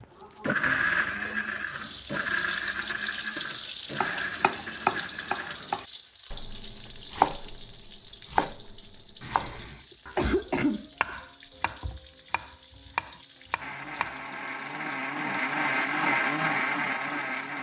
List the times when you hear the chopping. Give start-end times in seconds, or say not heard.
4.0-14.2.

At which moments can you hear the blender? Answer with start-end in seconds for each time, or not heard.
0.4-5.8, 13.6-17.5.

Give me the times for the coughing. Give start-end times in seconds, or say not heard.
9.2-11.1.